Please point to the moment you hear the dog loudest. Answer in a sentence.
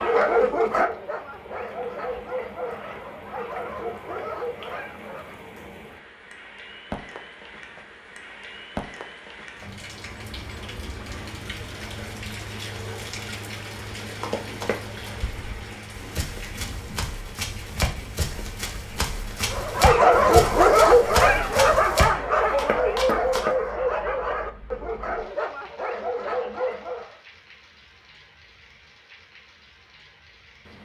The loudest moment of the dog is at 21 seconds.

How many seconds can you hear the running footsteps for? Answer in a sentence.
You can hear the running footsteps for 9 seconds altogether.